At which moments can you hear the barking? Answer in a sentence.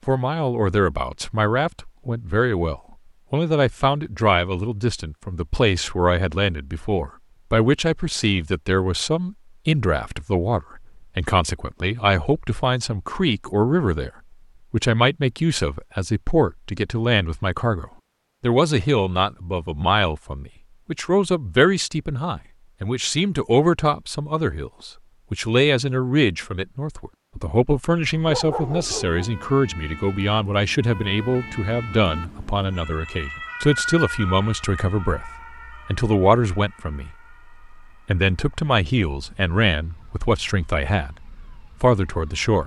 The barking can be heard from 28.2 to 29.3 s.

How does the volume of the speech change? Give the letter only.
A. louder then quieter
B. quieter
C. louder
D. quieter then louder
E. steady
E.